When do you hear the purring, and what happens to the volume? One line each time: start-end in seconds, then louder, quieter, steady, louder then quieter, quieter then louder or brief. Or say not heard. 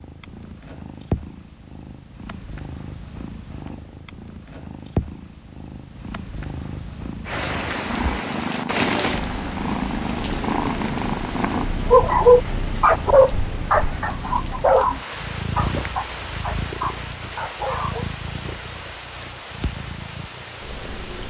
0.0-21.2 louder then quieter.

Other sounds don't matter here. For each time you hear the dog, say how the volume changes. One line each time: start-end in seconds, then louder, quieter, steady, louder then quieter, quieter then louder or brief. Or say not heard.
11.9-18.1 quieter.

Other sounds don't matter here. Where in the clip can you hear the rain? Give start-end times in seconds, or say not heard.
7.2-21.2.